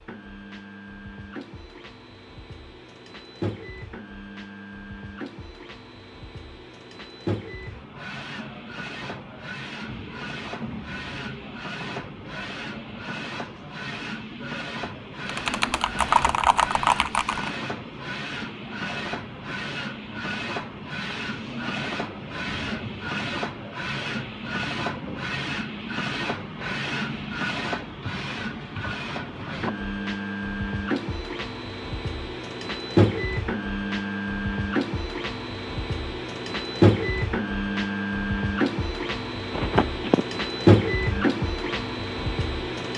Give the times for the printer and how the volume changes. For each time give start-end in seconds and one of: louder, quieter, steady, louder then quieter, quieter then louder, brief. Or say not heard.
0.0-42.9 louder.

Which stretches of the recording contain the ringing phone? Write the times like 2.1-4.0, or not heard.
39.5-40.2.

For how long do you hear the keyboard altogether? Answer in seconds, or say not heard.
2 s.